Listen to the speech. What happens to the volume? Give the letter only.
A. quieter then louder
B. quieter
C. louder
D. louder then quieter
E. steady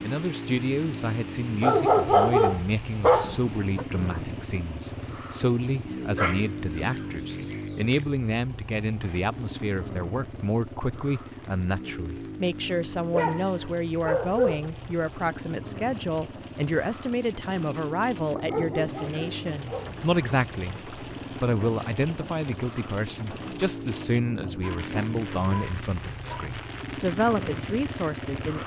E.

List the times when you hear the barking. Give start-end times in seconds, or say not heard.
1.6-3.9, 6.2-8.0, 13.1-14.7, 18.4-19.9, 24.6-26.5.